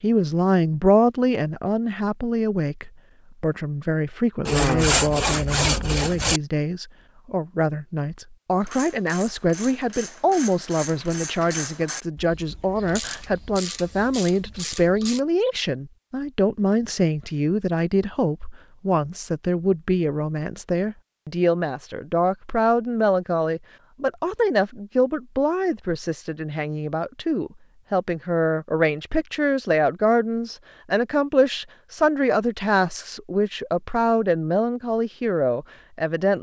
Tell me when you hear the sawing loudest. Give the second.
5 s.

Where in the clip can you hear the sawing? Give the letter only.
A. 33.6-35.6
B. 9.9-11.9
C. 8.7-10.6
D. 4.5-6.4
D.